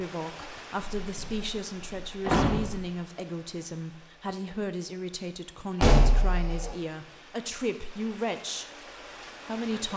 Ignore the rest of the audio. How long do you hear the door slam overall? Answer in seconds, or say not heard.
3 s.